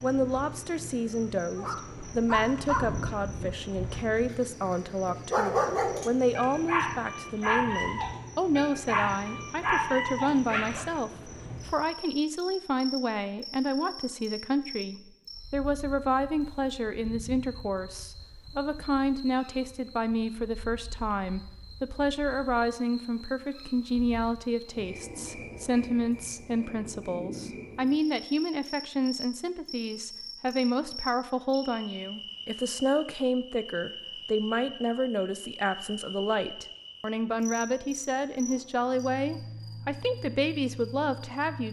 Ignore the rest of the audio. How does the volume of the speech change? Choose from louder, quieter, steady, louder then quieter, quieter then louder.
steady.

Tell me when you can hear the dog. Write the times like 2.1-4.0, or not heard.
1.6-11.0.